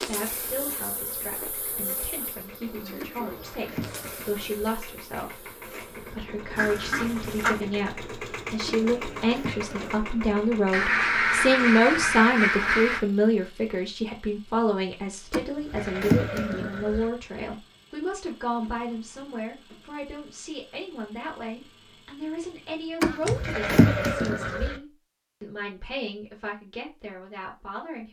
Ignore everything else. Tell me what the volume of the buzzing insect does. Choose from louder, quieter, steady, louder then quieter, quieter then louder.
quieter.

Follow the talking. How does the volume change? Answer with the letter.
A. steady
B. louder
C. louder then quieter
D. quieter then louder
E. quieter
C.